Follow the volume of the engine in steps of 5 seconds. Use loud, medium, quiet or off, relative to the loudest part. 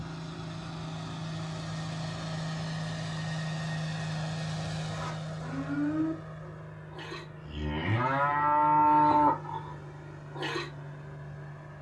loud, medium, medium.